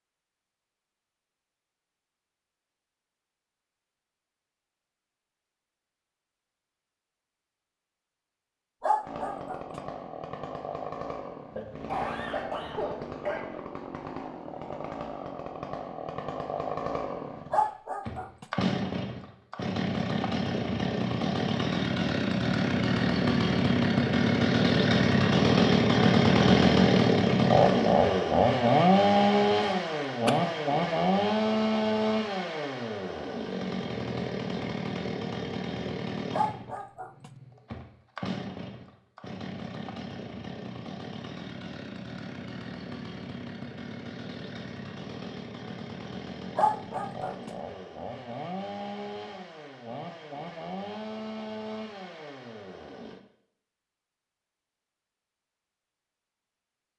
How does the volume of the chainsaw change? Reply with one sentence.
The volume of the chainsaw goes up, then down.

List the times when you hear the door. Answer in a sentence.
The door can't be heard in this clip.